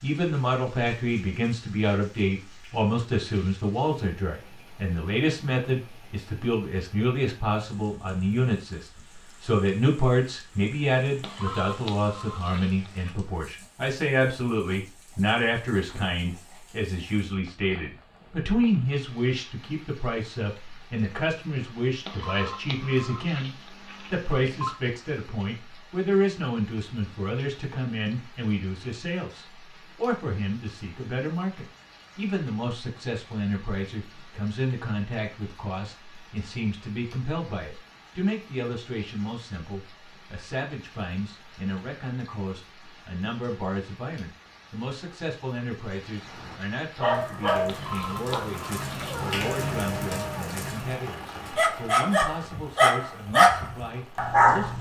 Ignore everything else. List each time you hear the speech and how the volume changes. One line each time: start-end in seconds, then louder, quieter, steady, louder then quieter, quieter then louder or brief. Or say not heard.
0.0-54.7 quieter.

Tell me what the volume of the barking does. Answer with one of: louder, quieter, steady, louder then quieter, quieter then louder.
quieter then louder.